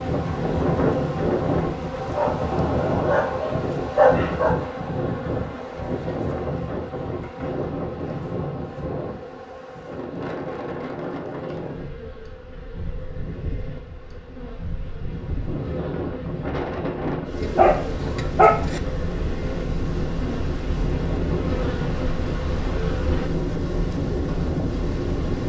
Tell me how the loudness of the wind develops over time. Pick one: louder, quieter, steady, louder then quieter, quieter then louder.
quieter then louder.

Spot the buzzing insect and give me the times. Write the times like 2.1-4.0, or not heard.
0.0-23.3.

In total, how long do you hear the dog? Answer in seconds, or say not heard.
4 s.